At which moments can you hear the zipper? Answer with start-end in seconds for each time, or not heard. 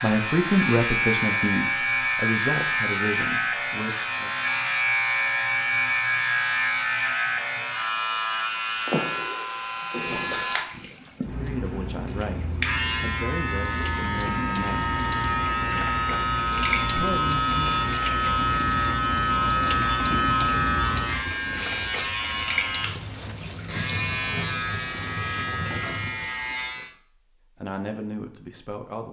not heard.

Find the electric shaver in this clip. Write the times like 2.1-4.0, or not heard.
0.0-26.9.